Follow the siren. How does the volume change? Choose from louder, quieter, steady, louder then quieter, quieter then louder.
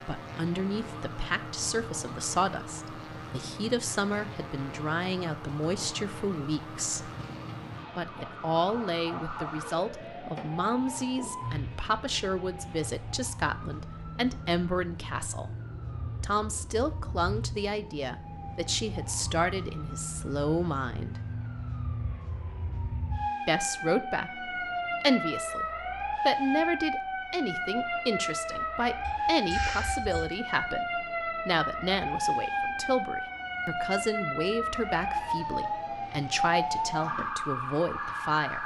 louder.